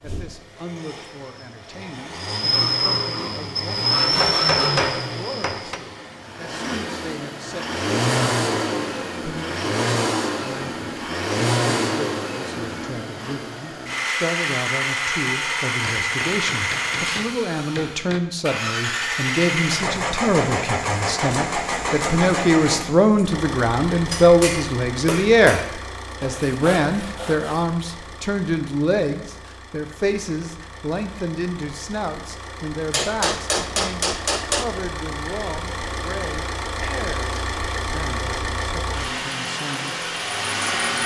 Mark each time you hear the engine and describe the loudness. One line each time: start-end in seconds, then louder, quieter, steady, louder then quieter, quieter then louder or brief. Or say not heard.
0.0-41.0 quieter then louder.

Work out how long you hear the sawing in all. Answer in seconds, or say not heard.
4 s.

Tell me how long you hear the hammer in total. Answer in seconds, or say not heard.
8 s.